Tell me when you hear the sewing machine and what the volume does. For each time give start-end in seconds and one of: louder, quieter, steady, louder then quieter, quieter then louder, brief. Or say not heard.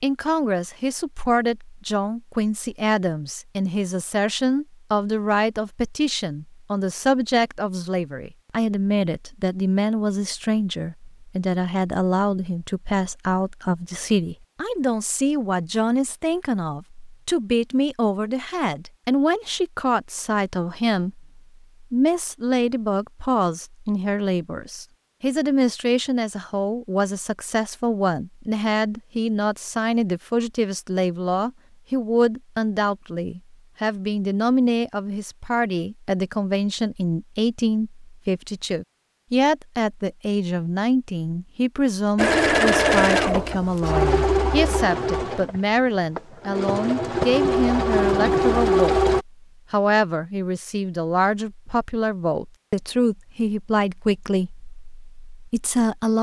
42.1-49.2 quieter then louder.